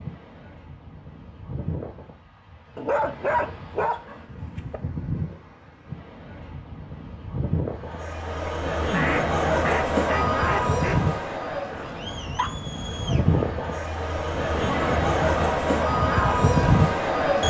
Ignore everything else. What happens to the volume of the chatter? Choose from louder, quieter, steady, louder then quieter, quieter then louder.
quieter then louder.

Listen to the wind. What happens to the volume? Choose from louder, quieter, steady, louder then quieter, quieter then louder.
louder.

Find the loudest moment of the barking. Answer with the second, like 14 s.
3 s.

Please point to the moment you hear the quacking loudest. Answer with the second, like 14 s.
9 s.